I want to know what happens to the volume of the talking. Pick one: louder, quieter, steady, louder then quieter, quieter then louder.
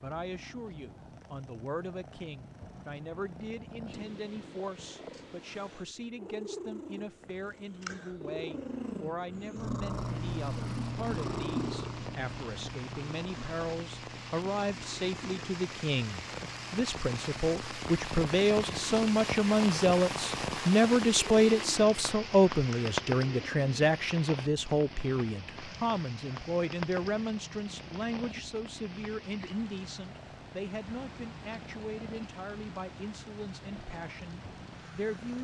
louder then quieter.